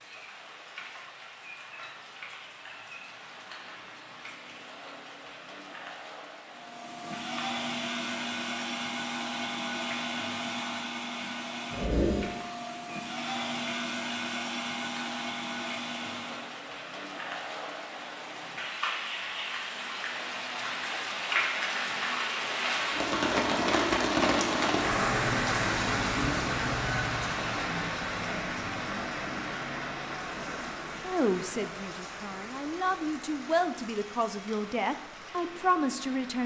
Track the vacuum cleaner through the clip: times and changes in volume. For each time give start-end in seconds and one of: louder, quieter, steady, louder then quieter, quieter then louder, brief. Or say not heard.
6.5-16.6 steady.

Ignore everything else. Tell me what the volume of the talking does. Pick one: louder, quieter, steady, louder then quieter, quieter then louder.
louder.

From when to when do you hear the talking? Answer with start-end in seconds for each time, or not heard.
31.0-36.4.